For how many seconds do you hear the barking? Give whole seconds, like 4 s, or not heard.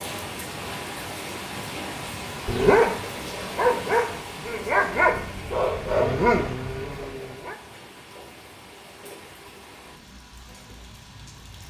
5 s.